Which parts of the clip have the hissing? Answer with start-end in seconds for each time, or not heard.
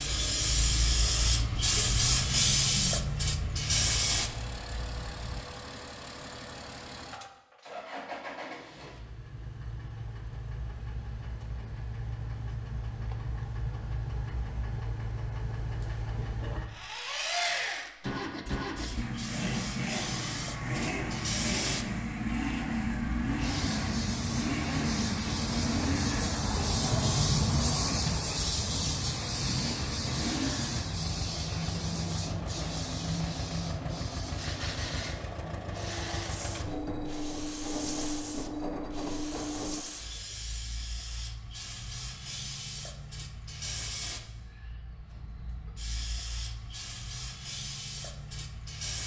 0.0-5.4, 18.8-49.0.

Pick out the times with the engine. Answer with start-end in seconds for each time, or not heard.
0.0-39.9.